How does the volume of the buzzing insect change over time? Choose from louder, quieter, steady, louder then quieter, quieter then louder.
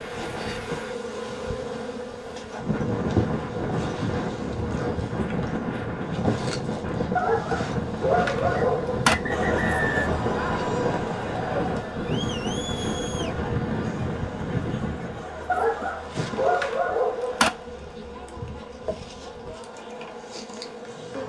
quieter.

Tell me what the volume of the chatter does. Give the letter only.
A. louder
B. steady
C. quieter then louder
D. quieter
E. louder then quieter
D.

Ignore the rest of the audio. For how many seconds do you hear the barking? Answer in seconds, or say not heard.
4 s.